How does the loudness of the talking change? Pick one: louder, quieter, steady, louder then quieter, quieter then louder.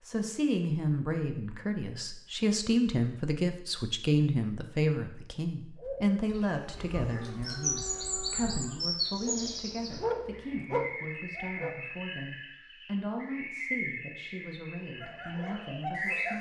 quieter.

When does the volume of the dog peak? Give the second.
10 s.